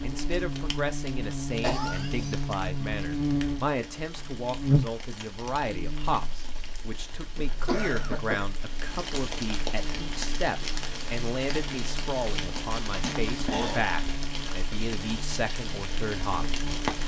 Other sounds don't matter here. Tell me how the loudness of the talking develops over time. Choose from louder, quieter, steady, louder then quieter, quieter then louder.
steady.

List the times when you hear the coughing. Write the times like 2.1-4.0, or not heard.
1.6-2.5, 7.3-8.5, 13.0-13.8.